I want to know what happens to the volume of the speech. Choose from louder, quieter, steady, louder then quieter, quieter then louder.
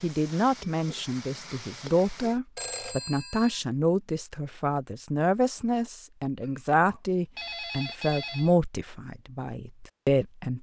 steady.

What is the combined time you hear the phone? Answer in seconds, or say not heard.
3 s.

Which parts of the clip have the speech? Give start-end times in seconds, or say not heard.
0.0-10.5.